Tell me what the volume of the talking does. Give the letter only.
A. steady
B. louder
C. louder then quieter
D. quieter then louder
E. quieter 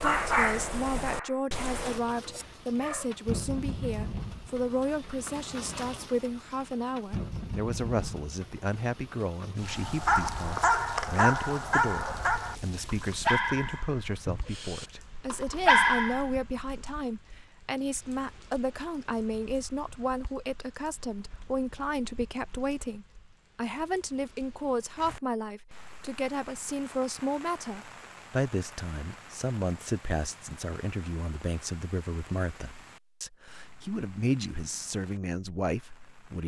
A.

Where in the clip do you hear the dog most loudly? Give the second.
16 s.